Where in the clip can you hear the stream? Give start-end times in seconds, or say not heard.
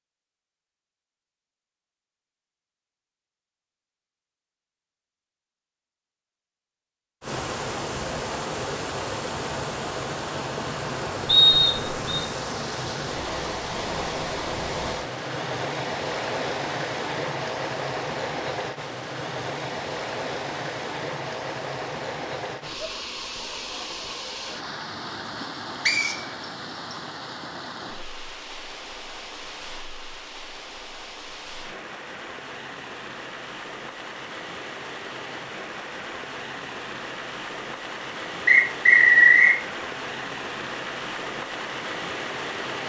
7.2-42.8.